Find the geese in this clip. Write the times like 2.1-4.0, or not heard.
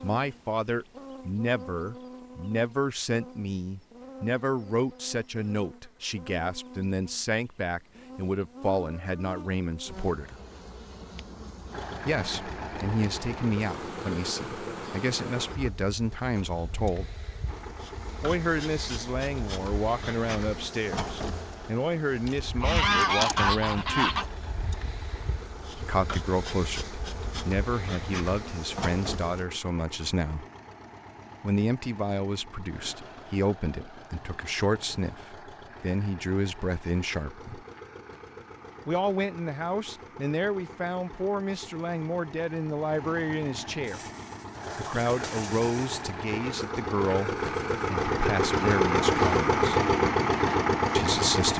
22.6-24.2.